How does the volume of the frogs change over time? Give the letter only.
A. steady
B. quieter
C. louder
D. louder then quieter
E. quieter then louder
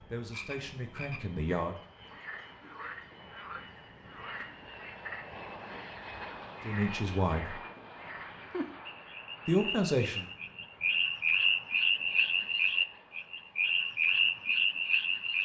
C.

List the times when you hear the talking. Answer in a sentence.
You can hear the talking from 0.0 to 1.8 s, from 6.7 to 7.6 s and from 9.4 to 10.2 s.